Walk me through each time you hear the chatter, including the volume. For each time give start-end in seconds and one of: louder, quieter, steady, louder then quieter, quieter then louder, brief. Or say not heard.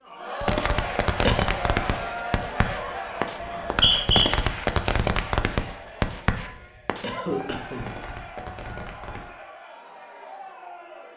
0.0-11.1 quieter.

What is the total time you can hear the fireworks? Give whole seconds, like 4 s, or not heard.
9 s.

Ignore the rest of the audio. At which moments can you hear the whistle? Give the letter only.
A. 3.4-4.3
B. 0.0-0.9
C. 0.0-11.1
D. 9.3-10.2
A.